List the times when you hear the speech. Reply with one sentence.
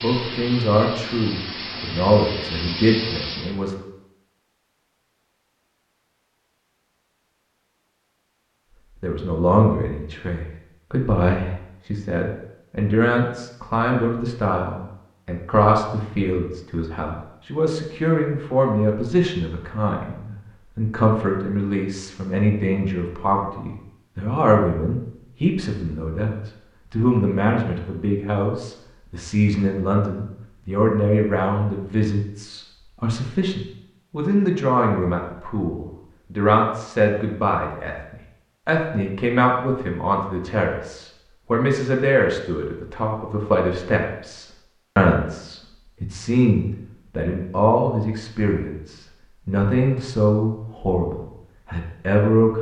The speech can be heard from 0.0 to 3.9 s and from 9.0 to 52.5 s.